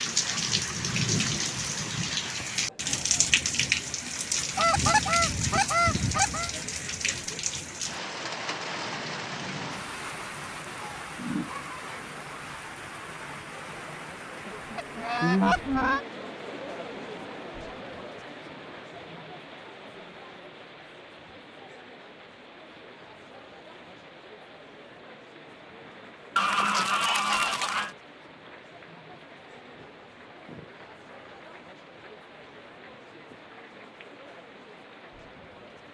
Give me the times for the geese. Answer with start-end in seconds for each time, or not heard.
4.5-6.5, 14.4-16.0, 26.4-27.9.